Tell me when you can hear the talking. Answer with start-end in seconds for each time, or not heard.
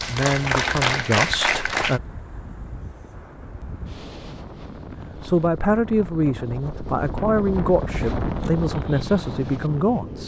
0.0-2.0, 5.2-10.2.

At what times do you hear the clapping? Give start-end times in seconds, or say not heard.
0.0-2.0.